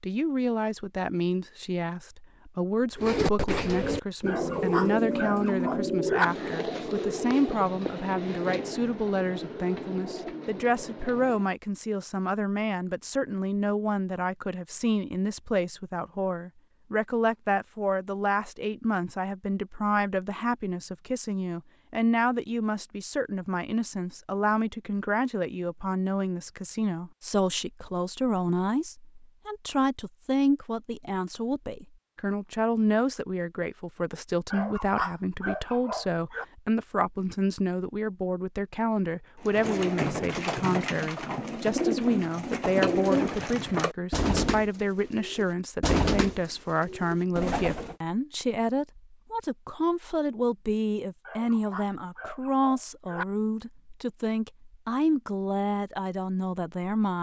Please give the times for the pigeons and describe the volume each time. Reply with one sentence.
The pigeons can be heard from 3.0 to 11.6 s, getting quieter; and from 39.4 to 48.0 s, at a steady volume.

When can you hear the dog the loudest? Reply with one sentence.
The loudest moment of the dog is at 6 seconds.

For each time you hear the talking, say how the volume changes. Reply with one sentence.
You can hear the talking from 0.0 to 57.1 s, at a steady volume.